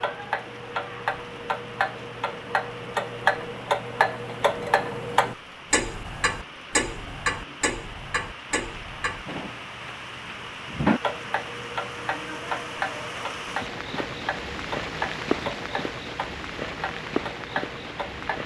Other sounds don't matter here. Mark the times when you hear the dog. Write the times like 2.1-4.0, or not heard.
not heard.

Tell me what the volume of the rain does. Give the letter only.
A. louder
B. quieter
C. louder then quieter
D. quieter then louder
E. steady
A.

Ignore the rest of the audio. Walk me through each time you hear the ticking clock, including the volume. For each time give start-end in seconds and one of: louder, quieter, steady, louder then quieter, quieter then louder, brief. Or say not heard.
0.0-18.4 quieter.